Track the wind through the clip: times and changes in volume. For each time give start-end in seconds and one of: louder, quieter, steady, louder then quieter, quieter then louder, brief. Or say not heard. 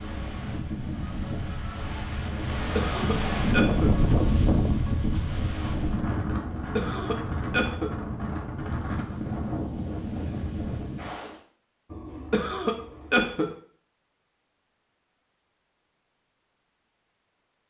0.0-11.4 louder then quieter.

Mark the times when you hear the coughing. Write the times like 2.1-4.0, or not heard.
2.5-3.9, 6.3-7.9, 11.9-13.5.